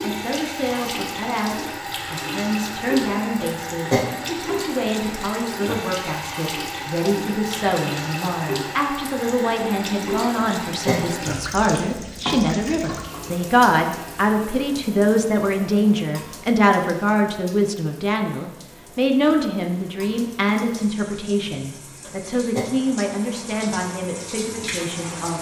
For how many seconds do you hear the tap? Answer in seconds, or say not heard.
25 s.